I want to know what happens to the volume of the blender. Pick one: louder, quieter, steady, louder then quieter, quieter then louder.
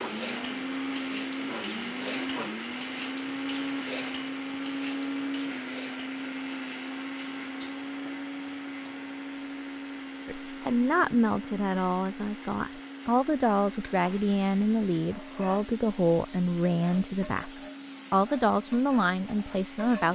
quieter.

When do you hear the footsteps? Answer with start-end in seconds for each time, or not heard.
not heard.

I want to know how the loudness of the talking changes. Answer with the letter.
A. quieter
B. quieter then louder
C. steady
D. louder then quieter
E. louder
C.